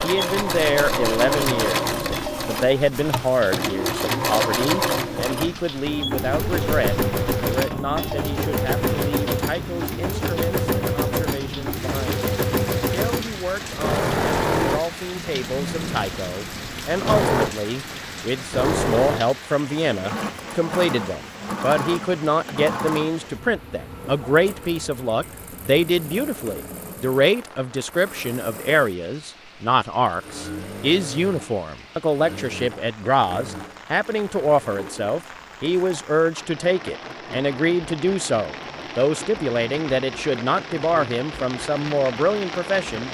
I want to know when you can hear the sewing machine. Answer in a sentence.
You can hear the sewing machine from 0.0 to 43.0 s.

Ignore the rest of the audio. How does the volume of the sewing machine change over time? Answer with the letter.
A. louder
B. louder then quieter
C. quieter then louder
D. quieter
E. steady
D.